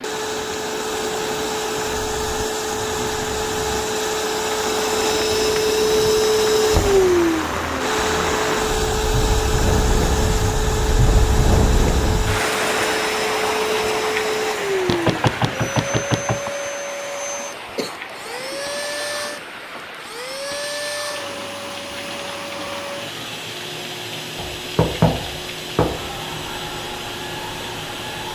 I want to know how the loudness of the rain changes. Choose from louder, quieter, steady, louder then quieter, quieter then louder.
louder then quieter.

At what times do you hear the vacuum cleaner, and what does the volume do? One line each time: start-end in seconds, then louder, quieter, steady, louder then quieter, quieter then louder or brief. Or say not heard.
0.0-28.3 quieter.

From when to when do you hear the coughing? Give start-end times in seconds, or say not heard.
17.8-18.6.